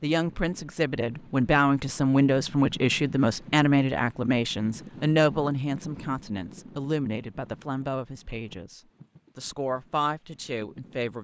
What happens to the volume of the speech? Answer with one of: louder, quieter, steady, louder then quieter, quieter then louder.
quieter.